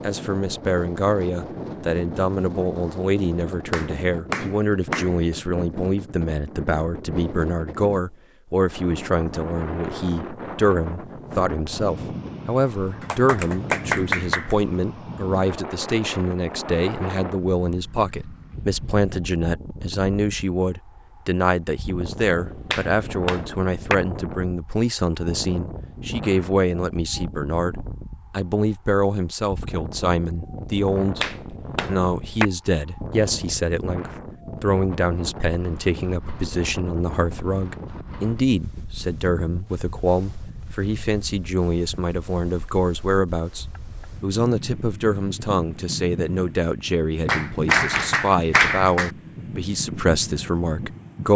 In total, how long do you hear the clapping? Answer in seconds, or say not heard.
7 s.